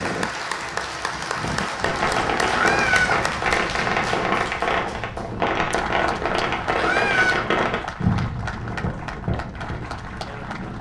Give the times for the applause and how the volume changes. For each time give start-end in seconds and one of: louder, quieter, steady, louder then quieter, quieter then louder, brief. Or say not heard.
0.0-10.7 quieter.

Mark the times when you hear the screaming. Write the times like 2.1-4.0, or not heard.
2.5-3.2, 6.8-7.5.